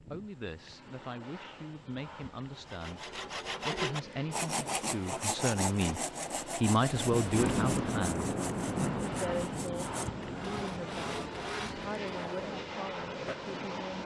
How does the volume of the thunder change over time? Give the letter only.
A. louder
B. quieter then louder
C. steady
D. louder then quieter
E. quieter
E.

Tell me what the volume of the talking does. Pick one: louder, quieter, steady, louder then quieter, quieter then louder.
louder then quieter.